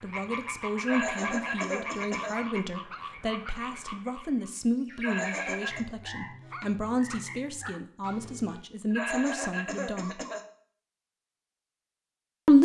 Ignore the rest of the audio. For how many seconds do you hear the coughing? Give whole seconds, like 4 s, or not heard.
4 s.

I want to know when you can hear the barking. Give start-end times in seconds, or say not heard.
2.3-3.6, 6.5-8.2.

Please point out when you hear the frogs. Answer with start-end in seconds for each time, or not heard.
0.0-8.6.